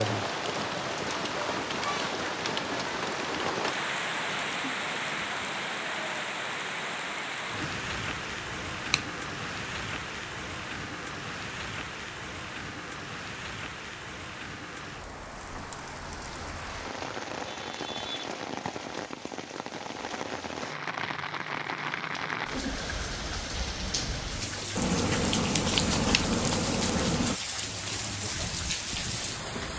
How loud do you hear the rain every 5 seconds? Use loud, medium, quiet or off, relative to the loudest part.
loud, loud, medium, medium, loud, loud.